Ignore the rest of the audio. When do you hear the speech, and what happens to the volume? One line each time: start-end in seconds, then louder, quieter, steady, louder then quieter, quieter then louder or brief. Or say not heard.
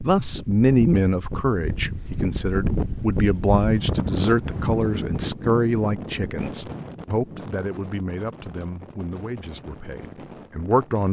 0.0-11.0 quieter.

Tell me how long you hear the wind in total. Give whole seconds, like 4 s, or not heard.
11 s.